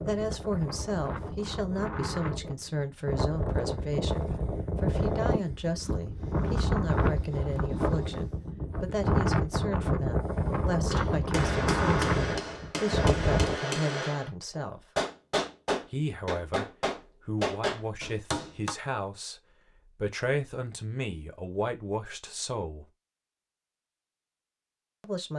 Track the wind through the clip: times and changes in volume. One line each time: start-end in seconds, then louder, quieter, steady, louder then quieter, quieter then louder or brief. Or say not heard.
0.0-13.6 louder.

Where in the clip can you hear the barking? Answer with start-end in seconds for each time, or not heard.
not heard.